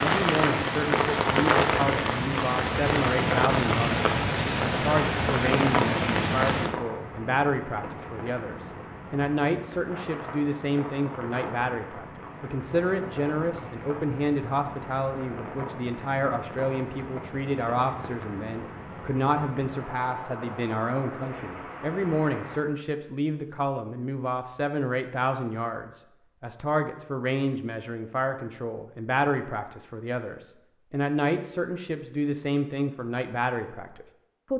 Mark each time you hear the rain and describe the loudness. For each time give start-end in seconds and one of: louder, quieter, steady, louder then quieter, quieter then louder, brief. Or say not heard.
0.0-22.6 quieter.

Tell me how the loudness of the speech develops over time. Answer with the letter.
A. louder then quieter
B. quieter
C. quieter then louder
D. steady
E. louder
D.